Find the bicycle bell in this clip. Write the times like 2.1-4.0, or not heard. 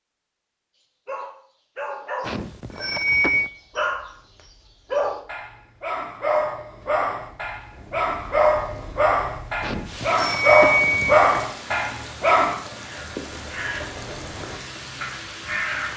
2.2-3.5, 9.6-11.4.